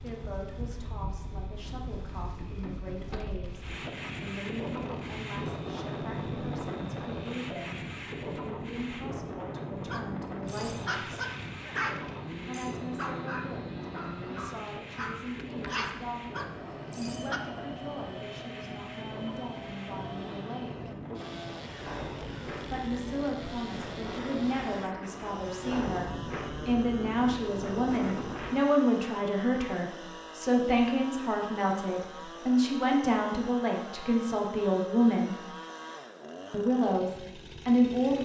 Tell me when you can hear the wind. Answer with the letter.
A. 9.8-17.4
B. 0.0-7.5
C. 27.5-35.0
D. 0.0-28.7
D.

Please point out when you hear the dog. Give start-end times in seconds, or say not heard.
9.8-17.4.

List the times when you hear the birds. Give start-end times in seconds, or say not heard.
not heard.